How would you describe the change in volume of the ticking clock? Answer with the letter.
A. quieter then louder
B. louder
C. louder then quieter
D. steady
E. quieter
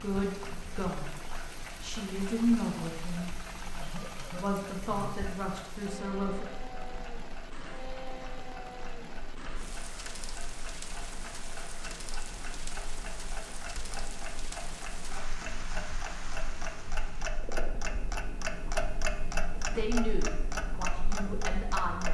B.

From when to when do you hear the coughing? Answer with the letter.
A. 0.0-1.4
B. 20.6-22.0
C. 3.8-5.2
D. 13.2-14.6
C.